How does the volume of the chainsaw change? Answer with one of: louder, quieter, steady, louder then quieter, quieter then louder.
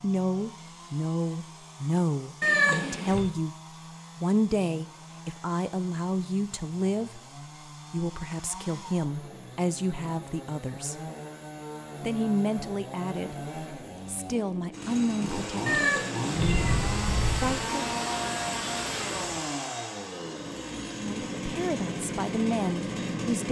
louder.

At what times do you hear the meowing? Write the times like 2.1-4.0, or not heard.
2.4-3.2, 15.7-17.6.